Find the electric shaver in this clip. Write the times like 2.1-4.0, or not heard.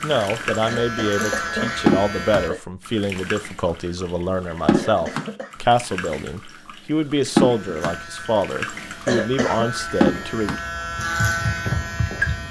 0.1-2.5, 7.3-12.4.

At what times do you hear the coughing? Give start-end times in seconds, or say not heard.
0.7-2.6, 4.7-5.5, 9.1-9.7.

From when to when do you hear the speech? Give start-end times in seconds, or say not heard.
0.0-10.6.